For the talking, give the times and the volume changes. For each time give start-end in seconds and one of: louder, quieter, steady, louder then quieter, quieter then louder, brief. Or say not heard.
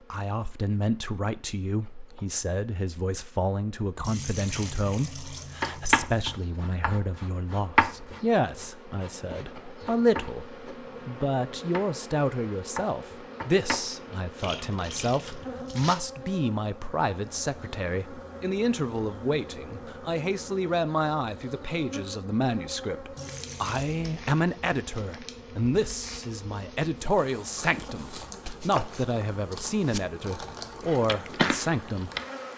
0.1-32.1 steady.